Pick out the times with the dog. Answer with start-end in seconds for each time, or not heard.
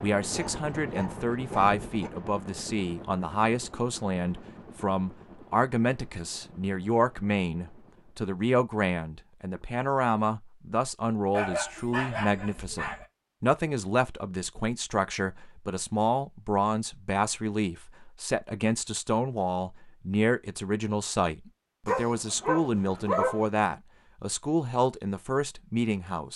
0.3-2.1, 11.3-13.1, 21.9-23.4.